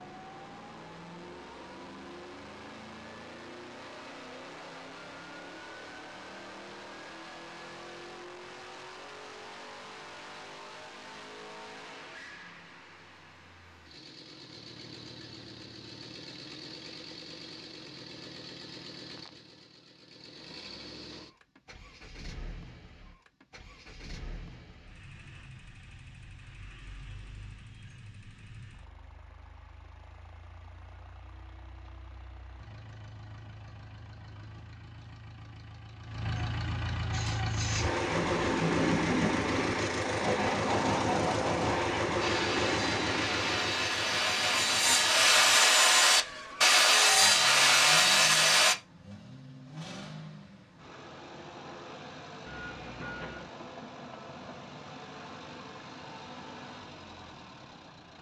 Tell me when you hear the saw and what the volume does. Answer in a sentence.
You can hear the saw from 37.1 to 48.8 s, getting louder.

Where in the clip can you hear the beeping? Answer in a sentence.
You can hear the beeping from 52.5 to 53.5 s.